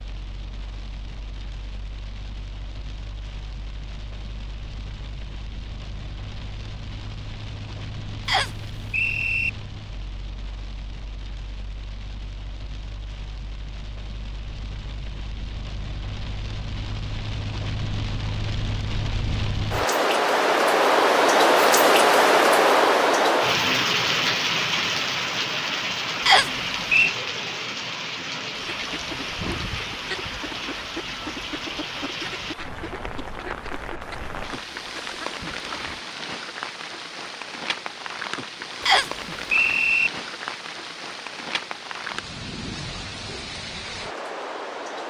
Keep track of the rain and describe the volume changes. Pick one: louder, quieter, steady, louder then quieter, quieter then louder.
louder then quieter.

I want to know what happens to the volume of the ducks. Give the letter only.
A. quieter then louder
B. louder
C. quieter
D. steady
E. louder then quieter
C.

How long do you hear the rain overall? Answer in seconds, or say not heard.
45 s.